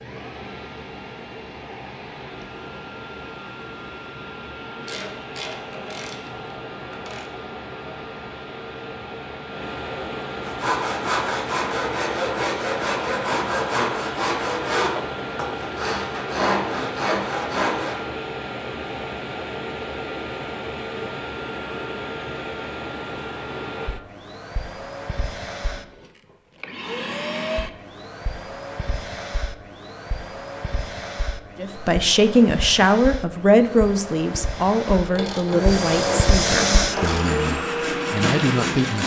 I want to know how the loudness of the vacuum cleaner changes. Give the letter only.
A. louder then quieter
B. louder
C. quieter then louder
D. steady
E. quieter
B.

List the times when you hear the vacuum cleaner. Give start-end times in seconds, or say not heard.
0.0-39.0.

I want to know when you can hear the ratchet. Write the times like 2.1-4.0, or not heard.
4.8-7.3, 34.9-37.4.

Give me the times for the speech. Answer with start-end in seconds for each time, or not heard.
31.6-39.0.